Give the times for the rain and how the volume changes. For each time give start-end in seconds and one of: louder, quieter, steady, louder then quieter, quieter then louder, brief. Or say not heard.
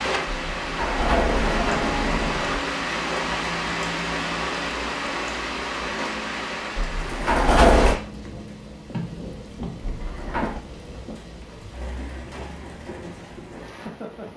0.0-14.3 quieter.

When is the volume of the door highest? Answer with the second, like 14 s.
8 s.